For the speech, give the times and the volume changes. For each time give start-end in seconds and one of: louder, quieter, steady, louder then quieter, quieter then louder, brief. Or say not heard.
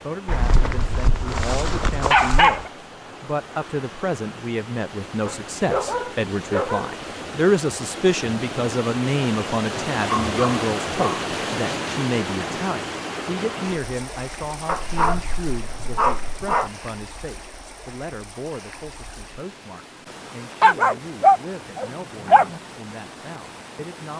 0.0-24.1 louder then quieter.